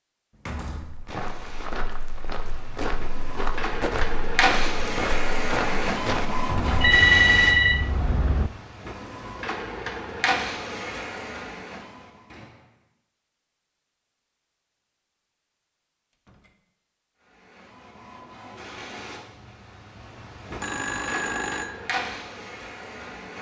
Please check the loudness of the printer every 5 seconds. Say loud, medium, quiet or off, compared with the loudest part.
loud, loud, loud, quiet, medium.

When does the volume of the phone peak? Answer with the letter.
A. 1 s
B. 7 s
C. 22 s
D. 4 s
B.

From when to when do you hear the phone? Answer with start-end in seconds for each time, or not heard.
6.5-8.5, 20.6-21.8.